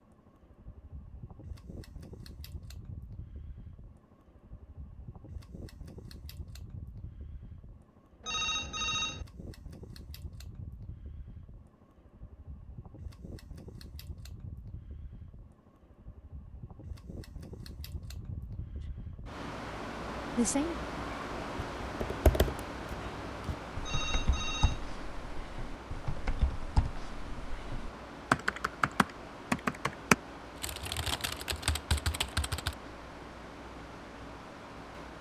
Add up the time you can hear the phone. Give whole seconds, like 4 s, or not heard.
2 s.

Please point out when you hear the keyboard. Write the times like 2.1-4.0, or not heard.
21.6-32.8.